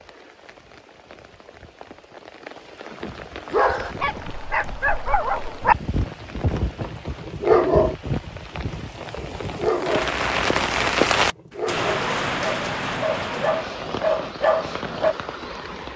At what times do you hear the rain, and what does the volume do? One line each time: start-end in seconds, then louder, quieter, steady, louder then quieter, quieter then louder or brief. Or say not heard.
0.0-15.9 louder then quieter.